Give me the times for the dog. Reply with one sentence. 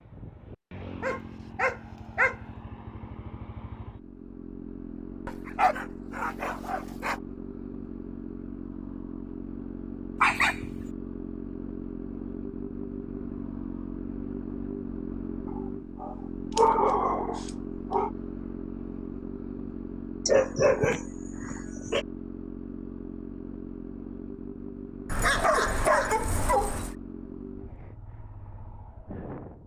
You can hear the dog from 1.0 to 2.4 s, from 5.2 to 7.2 s, from 10.2 to 10.8 s, from 15.6 to 18.1 s, from 20.2 to 22.1 s and from 25.1 to 26.9 s.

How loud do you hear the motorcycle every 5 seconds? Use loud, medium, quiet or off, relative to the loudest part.
medium, loud, loud, loud, loud, medium.